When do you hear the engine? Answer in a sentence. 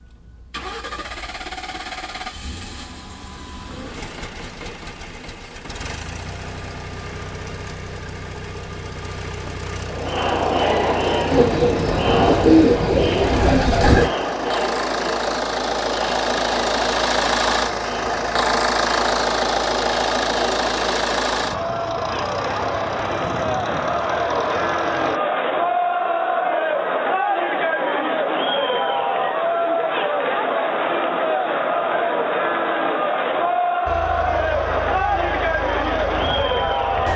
The engine can be heard from 0.0 to 25.2 s and from 33.9 to 37.1 s.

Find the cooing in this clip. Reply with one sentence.
The cooing can be heard from 11.3 to 14.1 s.